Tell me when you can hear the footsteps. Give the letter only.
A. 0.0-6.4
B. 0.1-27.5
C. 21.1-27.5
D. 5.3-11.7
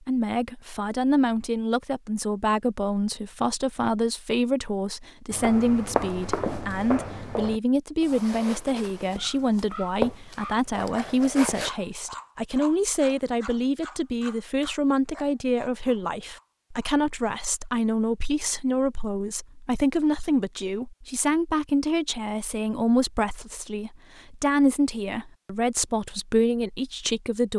D.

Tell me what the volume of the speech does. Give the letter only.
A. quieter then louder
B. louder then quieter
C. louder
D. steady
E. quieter
D.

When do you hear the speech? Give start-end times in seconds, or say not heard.
0.1-27.5.